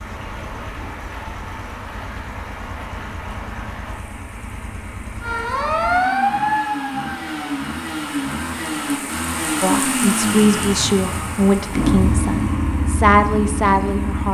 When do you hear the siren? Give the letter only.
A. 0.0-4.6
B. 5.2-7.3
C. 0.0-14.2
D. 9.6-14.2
B.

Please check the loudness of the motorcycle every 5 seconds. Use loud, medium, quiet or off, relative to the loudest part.
quiet, loud, loud.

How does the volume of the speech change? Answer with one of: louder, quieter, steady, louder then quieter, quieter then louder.
quieter then louder.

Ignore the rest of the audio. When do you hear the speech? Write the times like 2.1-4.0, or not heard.
9.6-14.2.